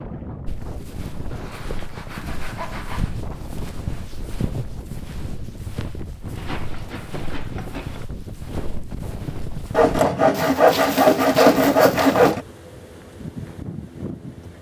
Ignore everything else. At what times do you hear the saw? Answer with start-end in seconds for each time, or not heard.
1.3-3.1, 6.3-8.1, 9.7-12.4.